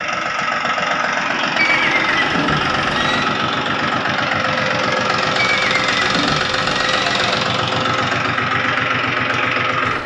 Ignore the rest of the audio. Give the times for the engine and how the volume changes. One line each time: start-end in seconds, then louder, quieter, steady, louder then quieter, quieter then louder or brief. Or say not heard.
0.0-10.0 steady.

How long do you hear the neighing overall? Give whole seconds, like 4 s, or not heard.
4 s.